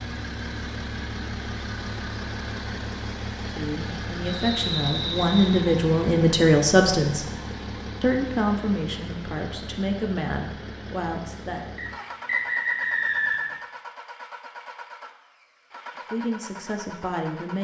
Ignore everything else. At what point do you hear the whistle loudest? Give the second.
13 s.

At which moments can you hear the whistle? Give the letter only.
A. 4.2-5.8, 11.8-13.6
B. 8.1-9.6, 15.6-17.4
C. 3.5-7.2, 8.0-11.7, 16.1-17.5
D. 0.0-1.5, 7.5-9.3
A.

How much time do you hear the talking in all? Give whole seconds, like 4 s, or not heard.
9 s.